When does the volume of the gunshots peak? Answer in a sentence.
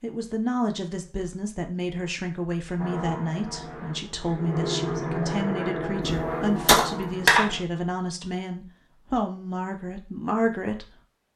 The loudest moment of the gunshots is at 7 seconds.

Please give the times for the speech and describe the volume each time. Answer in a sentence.
The speech can be heard from 0.0 to 10.8 s, at a steady volume.